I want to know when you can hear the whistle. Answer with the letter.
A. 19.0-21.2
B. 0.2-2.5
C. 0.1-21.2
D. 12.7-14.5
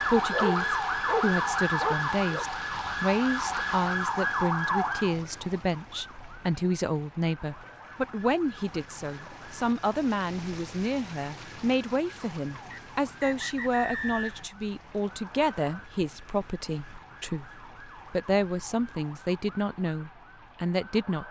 D.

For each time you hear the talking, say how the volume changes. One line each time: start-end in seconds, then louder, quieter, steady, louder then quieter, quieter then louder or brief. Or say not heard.
0.1-21.2 steady.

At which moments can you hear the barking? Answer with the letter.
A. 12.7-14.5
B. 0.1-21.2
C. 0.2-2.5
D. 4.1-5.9
C.